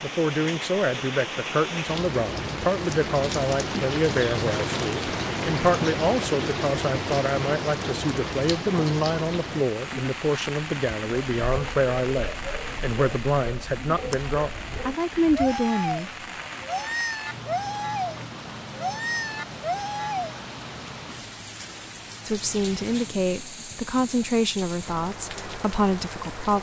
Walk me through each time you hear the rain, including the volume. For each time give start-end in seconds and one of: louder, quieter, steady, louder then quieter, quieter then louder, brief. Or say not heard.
0.0-26.5 quieter.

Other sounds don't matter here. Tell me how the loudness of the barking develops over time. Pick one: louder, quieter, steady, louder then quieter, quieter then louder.
louder.